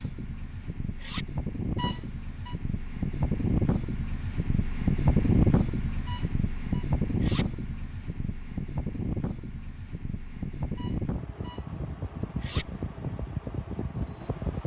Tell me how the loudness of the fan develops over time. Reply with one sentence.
The volume of the fan goes up, then down.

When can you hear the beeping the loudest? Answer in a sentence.
The loudest moment of the beeping is at 2 seconds.